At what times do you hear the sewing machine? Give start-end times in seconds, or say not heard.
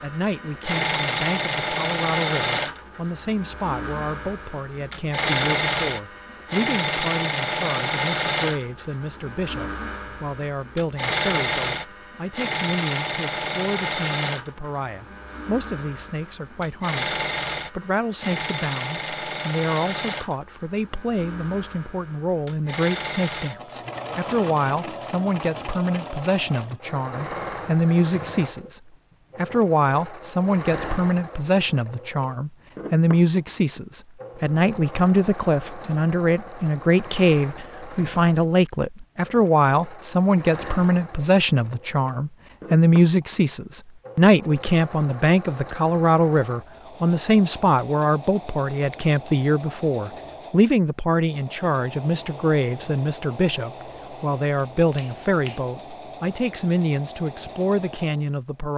0.0-58.7.